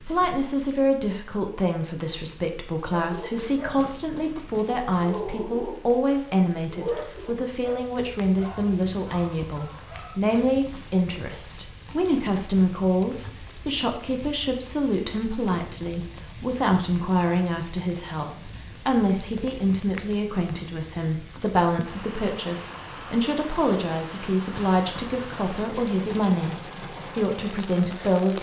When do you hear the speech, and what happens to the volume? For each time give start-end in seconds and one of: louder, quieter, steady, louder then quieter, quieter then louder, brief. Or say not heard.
0.0-26.6 steady
27.1-28.3 brief.